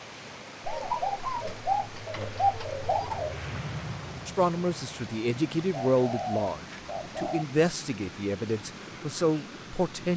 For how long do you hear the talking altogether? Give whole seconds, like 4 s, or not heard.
6 s.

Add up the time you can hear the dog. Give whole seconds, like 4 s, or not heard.
not heard.